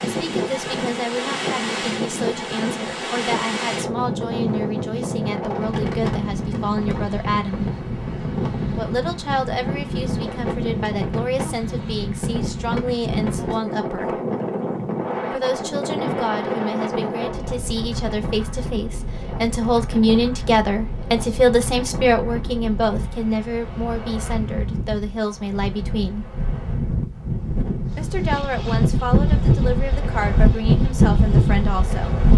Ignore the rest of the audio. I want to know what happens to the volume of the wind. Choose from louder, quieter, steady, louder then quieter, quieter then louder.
quieter then louder.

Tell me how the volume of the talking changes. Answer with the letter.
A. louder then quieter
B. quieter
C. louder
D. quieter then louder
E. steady
A.